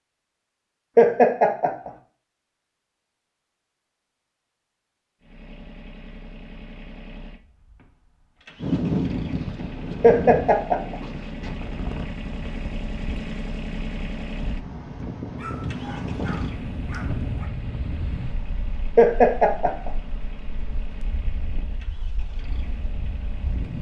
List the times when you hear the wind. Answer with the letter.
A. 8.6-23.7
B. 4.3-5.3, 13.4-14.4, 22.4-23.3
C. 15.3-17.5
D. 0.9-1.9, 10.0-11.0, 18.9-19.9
A.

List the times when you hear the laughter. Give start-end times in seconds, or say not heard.
0.9-1.9, 10.0-11.0, 18.9-19.9.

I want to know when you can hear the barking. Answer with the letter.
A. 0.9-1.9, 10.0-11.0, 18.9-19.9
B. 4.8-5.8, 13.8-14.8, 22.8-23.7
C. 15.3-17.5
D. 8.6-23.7
C.